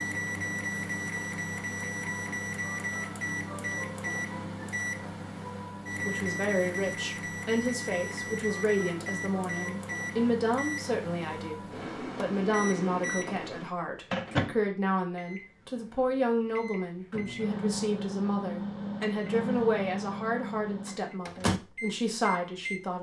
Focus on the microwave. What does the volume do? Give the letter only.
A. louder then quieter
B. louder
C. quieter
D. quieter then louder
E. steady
E.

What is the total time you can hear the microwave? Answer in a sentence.
You can hear the microwave for 23 seconds altogether.